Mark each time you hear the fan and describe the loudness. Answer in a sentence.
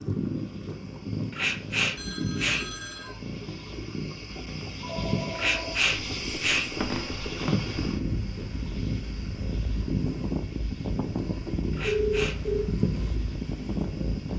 The fan can be heard from 0.0 to 14.3 s, getting louder.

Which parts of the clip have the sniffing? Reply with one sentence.
The sniffing can be heard from 1.3 to 3.1 s, from 5.3 to 6.7 s and from 11.7 to 12.3 s.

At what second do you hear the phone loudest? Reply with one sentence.
The volume of the phone peaks at 12 seconds.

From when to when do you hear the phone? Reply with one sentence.
The phone can be heard from 1.9 to 3.1 s, from 4.8 to 5.8 s and from 11.8 to 12.7 s.